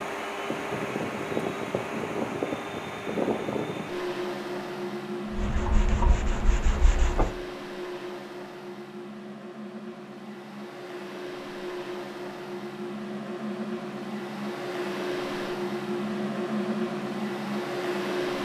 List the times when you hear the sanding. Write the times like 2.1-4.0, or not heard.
5.3-7.3.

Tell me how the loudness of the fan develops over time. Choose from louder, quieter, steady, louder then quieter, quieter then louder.
quieter then louder.